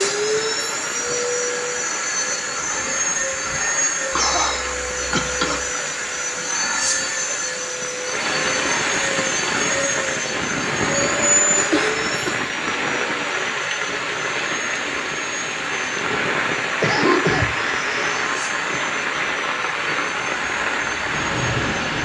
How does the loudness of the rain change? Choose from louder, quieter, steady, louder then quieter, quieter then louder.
louder.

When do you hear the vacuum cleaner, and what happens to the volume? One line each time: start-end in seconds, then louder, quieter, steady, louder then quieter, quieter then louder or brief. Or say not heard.
0.0-21.9 quieter.